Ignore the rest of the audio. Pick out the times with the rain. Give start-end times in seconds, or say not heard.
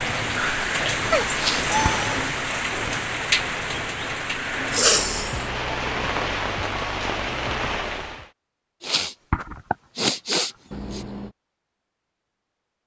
0.0-8.3.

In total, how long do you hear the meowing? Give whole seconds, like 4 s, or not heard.
2 s.